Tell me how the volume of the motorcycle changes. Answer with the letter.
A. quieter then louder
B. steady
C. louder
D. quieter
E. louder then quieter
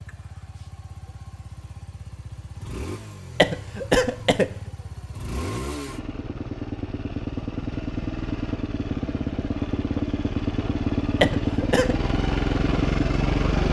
C.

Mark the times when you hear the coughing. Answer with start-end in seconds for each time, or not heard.
3.4-4.5, 11.2-11.9.